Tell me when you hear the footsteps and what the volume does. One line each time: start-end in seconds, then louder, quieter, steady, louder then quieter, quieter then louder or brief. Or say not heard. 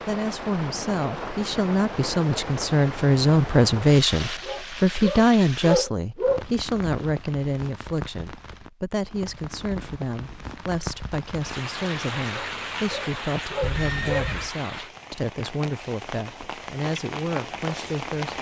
not heard.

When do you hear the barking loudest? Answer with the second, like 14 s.
6 s.